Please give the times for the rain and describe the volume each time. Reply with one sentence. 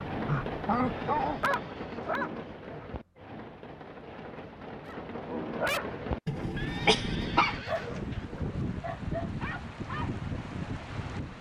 The rain can be heard from 0.0 to 11.3 s, getting quieter then louder.